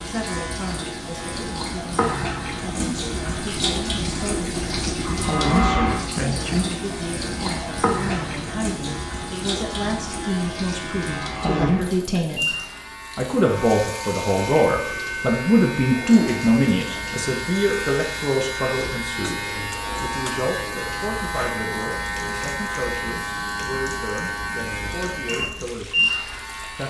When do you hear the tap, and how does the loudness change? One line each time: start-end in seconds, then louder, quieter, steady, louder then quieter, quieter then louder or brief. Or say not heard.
0.0-26.8 quieter.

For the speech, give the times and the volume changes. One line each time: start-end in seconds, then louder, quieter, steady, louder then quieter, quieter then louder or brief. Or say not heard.
0.0-26.8 louder then quieter.